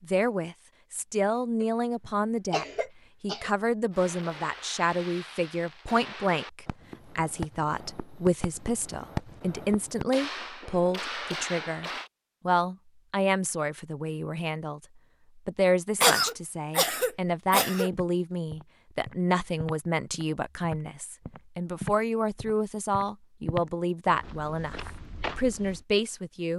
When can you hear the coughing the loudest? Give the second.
16 s.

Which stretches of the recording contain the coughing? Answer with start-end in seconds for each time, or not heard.
1.6-3.5, 16.0-17.9.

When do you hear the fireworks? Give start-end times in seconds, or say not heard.
3.9-12.1.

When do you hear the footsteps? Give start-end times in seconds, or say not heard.
17.9-25.9.